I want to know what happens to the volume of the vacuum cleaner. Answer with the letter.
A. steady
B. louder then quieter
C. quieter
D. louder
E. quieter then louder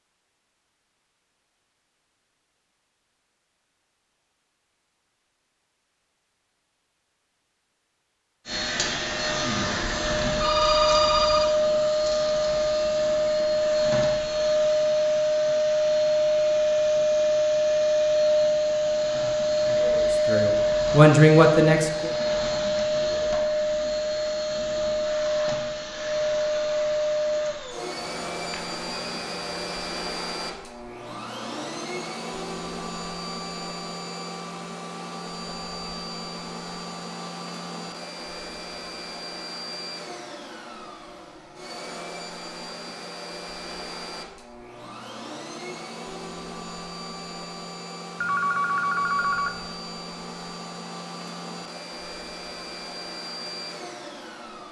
C.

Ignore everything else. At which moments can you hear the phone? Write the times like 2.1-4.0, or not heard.
9.8-11.5, 27.9-29.8, 48.2-49.5.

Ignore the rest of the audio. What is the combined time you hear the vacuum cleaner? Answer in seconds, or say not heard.
46 s.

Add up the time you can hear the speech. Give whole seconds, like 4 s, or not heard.
2 s.